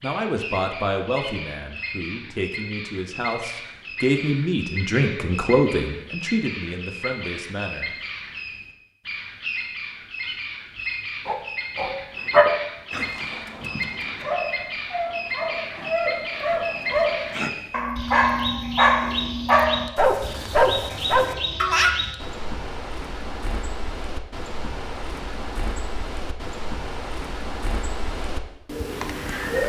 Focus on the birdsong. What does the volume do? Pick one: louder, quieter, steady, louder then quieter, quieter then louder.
steady.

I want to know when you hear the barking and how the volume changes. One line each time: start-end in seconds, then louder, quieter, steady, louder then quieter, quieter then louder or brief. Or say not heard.
11.2-22.0 quieter then louder.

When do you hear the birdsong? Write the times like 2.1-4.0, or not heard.
0.0-29.6.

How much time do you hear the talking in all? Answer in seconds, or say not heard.
8 s.